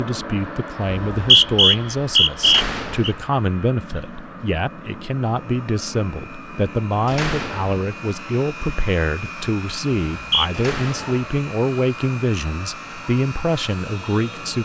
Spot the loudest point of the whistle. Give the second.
1 s.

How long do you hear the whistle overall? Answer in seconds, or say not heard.
3 s.